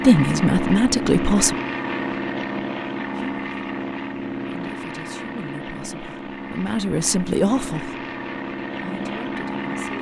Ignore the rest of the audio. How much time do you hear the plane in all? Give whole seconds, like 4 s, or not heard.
10 s.